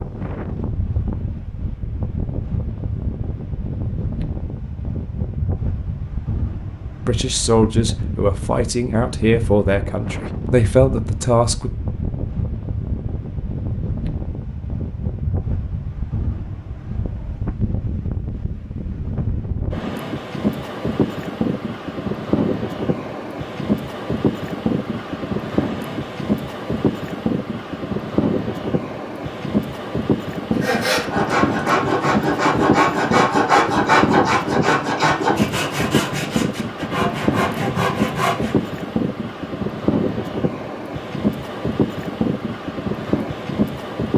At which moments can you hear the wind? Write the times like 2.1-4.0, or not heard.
0.0-44.1.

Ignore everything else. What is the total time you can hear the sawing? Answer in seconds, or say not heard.
8 s.